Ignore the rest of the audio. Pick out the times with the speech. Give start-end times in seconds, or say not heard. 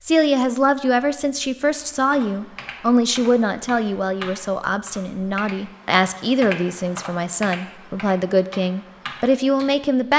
0.0-10.1.